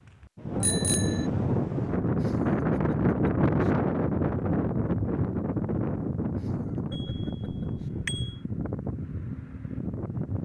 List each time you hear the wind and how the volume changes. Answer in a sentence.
The wind can be heard from 0.1 to 10.4 s, getting quieter.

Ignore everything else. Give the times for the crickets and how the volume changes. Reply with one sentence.
You can't hear the crickets here.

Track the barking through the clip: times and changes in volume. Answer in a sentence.
The barking can't be heard in this clip.